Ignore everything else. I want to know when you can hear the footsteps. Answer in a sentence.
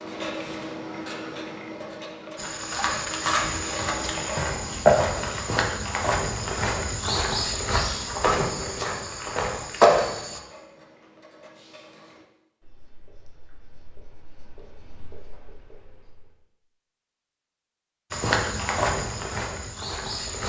You can hear the footsteps from 2.4 to 10.4 s and from 18.1 to 20.4 s.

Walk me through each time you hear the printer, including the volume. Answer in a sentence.
You can't hear the printer here.